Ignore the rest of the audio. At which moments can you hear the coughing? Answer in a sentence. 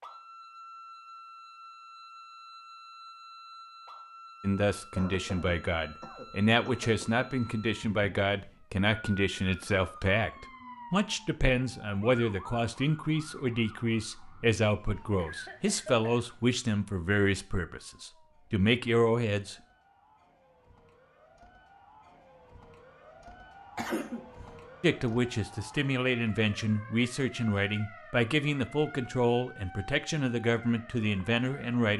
You can hear the coughing from 5.0 to 7.2 s, from 15.2 to 16.3 s and from 23.8 to 24.3 s.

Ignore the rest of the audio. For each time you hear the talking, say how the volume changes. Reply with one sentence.
You can hear the talking from 4.4 to 19.6 s, at a steady volume; and from 24.8 to 31.9 s, at a steady volume.